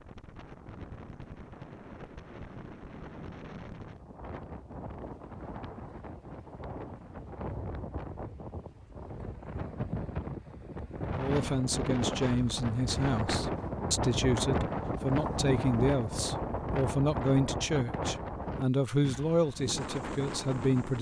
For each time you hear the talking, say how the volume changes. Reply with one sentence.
You can hear the talking from 11.2 to 20.9 s, at a steady volume.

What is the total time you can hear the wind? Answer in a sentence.
You can hear the wind for 21 seconds altogether.